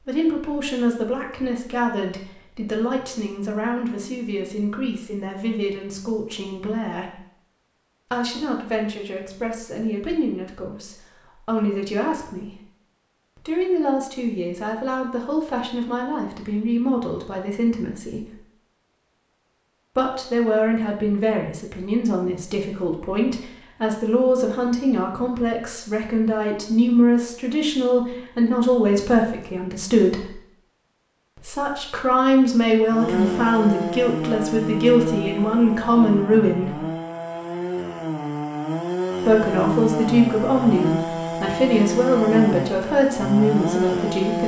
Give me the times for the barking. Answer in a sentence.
You can't hear the barking here.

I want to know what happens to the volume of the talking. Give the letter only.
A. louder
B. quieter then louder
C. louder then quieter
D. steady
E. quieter
A.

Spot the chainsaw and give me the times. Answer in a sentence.
You can hear the chainsaw from 32.9 to 44.4 s.